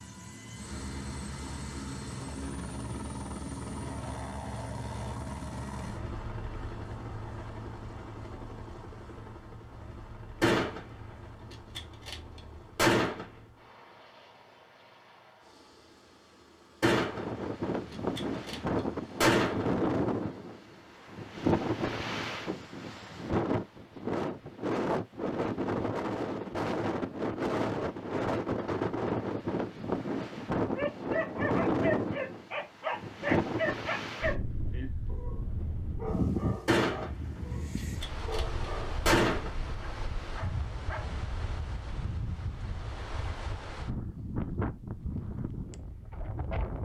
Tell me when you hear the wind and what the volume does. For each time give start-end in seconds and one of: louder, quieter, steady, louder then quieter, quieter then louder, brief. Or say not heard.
16.9-46.8 quieter.